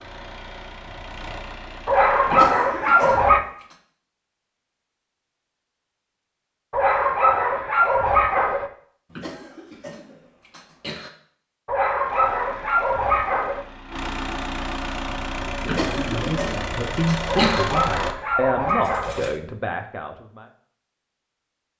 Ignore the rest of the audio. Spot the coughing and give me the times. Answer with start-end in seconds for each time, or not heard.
2.2-3.8, 9.1-11.1, 15.6-17.6.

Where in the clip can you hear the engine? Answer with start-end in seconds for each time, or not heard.
0.0-2.5, 12.0-19.4.